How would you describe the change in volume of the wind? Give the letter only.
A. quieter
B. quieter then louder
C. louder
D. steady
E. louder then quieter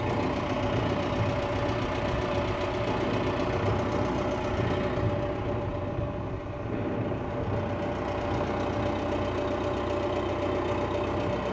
A.